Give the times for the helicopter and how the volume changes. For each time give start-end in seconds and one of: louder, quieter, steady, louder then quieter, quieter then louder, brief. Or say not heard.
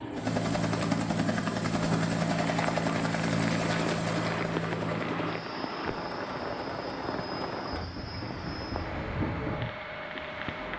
0.0-10.7 quieter.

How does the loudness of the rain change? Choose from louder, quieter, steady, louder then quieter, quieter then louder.
steady.